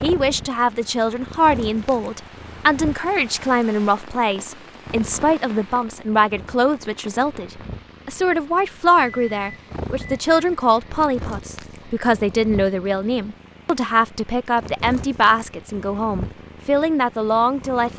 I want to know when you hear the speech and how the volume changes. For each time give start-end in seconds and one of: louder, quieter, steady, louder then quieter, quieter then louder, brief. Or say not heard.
0.0-17.9 steady.